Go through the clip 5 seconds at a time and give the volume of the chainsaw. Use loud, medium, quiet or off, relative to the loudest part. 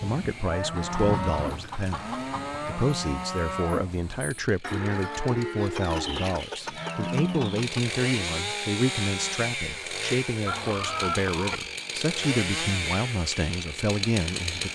quiet, loud, loud.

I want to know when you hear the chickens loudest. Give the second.
11 s.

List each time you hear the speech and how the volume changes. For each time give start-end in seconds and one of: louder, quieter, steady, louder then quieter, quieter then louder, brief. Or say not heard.
0.0-14.7 steady.